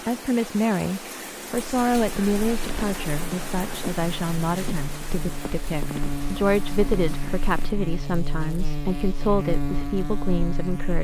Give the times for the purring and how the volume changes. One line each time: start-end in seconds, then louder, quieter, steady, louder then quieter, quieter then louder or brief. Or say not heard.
not heard.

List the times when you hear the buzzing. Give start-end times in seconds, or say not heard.
1.6-10.9.